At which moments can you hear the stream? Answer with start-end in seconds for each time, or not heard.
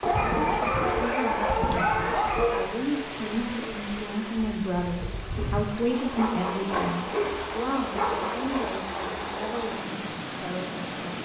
0.0-11.2.